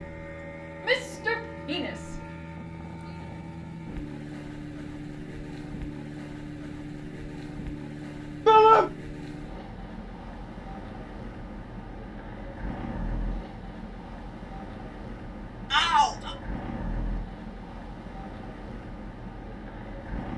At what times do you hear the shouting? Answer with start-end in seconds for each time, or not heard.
0.8-2.1, 8.4-8.8, 15.7-16.4.